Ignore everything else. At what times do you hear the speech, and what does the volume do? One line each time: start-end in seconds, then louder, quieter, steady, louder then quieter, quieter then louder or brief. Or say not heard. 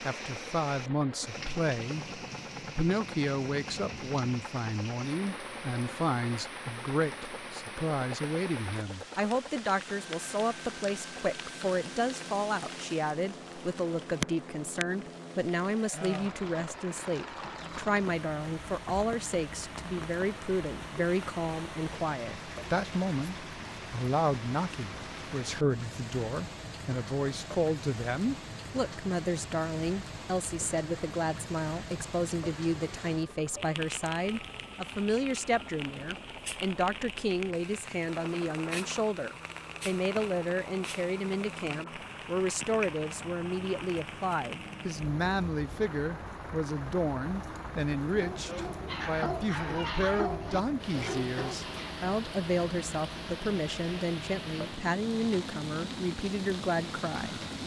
0.0-57.5 steady.